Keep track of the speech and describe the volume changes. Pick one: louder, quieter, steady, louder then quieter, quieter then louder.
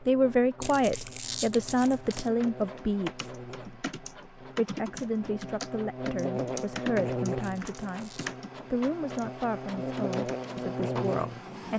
quieter.